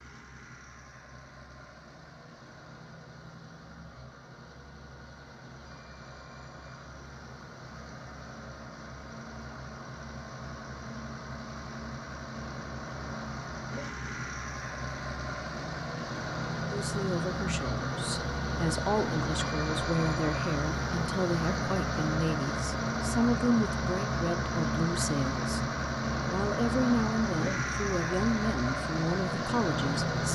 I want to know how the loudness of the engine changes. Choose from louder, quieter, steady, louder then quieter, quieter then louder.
louder.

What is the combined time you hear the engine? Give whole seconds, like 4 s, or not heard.
30 s.